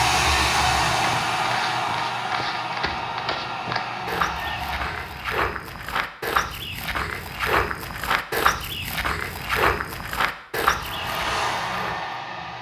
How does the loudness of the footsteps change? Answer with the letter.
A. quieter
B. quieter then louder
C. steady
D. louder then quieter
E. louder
E.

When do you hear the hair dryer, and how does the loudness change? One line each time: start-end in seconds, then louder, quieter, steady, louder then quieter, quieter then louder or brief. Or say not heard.
0.0-5.3 quieter
10.7-12.5 brief.